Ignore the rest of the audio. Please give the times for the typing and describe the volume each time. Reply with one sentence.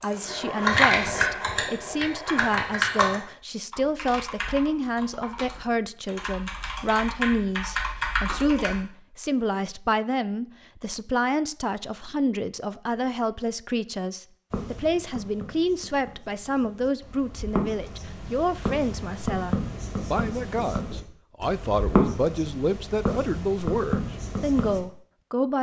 The typing can be heard from 0.0 to 8.8 s, getting quieter then louder.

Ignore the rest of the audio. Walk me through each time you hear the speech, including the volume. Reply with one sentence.
You can hear the speech from 0.0 to 25.5 s, at a steady volume.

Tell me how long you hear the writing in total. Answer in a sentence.
You can hear the writing for 10 seconds altogether.